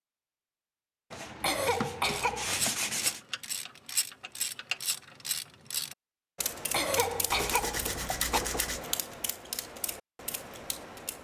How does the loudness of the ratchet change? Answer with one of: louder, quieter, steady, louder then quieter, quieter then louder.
quieter.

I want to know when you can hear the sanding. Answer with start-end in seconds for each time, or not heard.
1.1-3.2, 7.3-8.8.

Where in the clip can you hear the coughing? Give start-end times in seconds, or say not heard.
1.4-2.7, 6.7-8.4.